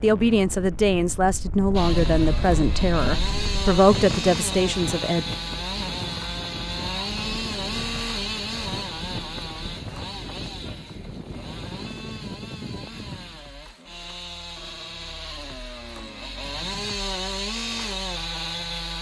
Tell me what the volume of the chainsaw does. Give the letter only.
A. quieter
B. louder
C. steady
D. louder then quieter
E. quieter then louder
E.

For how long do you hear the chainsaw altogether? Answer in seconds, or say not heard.
17 s.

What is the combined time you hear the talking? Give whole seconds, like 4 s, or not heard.
5 s.